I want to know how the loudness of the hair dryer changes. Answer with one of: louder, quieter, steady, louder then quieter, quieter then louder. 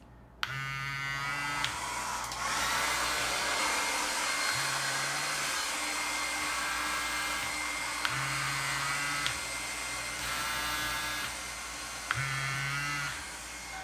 quieter.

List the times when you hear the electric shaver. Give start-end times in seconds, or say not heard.
0.0-13.7.